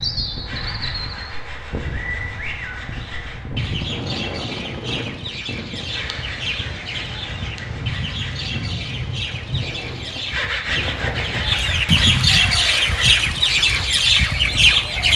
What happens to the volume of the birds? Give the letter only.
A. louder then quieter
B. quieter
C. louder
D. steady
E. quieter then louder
C.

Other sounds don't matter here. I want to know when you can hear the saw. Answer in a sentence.
You can hear the saw from 0.5 to 3.4 s, from 5.9 to 8.5 s and from 10.3 to 13.2 s.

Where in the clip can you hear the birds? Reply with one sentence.
You can hear the birds from 0.0 to 15.1 s.